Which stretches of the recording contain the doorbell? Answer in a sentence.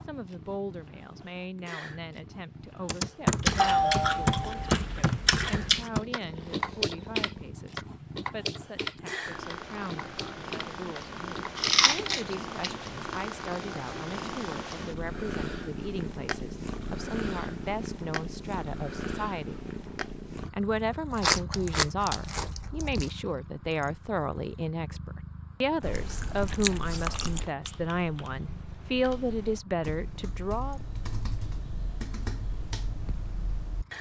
You can hear the doorbell from 3.5 to 4.8 s.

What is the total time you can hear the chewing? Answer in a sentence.
You can hear the chewing for 7 seconds altogether.